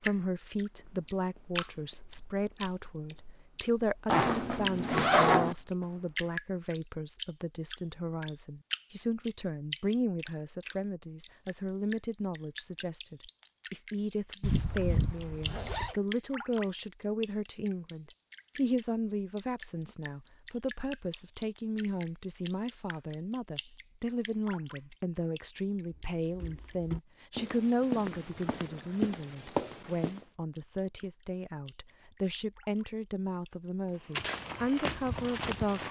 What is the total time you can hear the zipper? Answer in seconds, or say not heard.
4 s.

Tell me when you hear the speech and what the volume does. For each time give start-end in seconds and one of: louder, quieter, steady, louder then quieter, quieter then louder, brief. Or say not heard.
0.0-35.8 steady.